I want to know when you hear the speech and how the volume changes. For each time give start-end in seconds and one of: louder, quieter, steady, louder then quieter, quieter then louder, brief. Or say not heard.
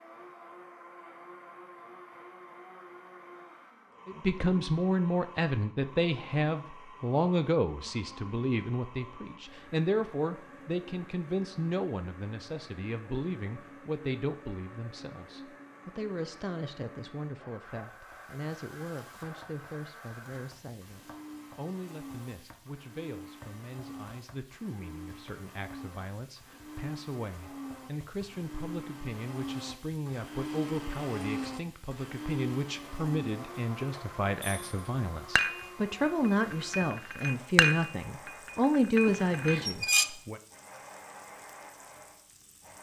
4.0-40.4 quieter then louder.